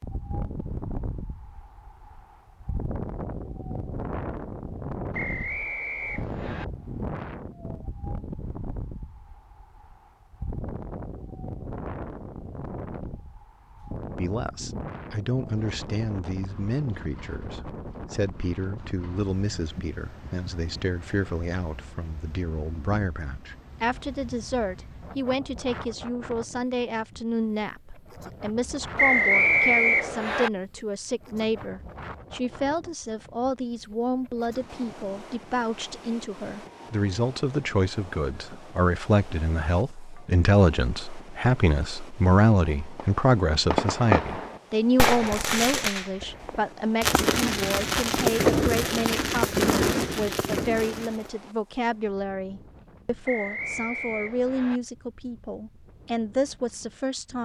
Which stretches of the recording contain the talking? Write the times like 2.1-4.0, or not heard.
14.2-57.4.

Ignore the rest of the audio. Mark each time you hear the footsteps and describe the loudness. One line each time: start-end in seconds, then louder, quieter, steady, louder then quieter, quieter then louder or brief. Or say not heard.
not heard.